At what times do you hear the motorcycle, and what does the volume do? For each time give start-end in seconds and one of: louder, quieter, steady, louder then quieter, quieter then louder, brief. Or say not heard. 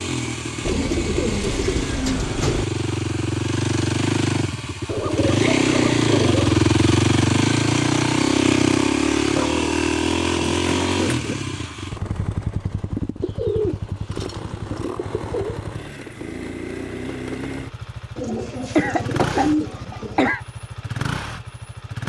0.0-22.0 louder then quieter.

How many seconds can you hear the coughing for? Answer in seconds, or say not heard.
2 s.